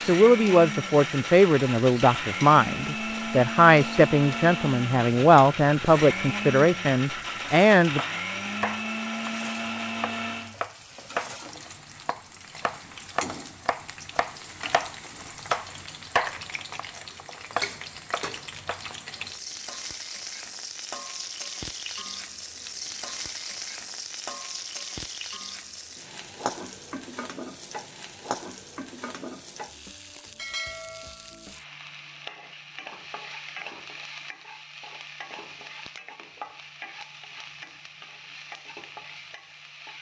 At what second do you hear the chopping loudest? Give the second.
16 s.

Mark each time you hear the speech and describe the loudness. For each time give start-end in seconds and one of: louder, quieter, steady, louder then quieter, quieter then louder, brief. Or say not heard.
0.0-8.0 steady.